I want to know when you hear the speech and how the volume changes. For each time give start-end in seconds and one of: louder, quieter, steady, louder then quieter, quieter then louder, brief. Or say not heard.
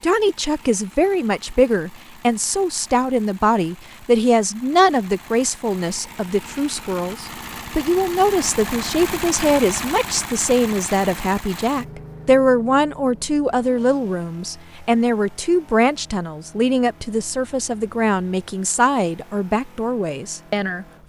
0.0-20.9 steady.